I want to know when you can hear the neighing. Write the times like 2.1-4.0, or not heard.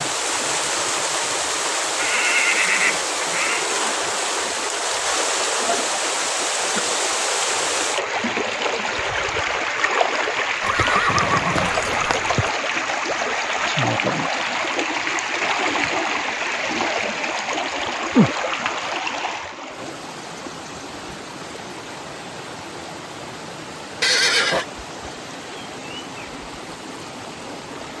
1.9-3.7, 10.6-12.5, 24.0-24.6.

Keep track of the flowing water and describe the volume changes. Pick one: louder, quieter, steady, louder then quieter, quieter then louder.
quieter.